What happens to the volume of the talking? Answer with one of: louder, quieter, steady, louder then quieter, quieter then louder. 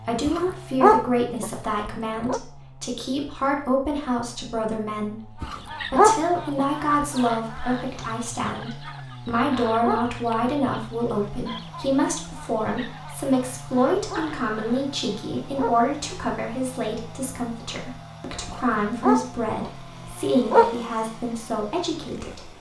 steady.